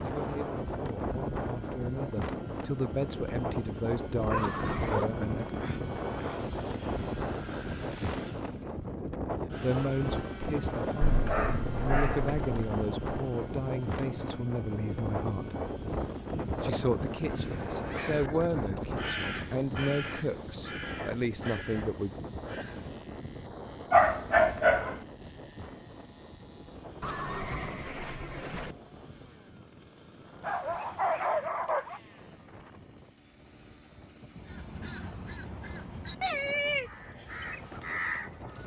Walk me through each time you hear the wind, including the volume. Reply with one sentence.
The wind can be heard from 0.0 to 38.6 s, getting quieter.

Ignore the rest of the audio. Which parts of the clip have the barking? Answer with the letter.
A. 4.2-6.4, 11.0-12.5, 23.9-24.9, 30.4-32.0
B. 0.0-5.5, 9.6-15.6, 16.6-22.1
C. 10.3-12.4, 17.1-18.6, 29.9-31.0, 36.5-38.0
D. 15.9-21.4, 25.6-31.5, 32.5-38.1
A.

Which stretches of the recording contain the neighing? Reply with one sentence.
You can hear the neighing from 4.3 to 5.0 s, from 17.2 to 19.1 s and from 27.0 to 28.8 s.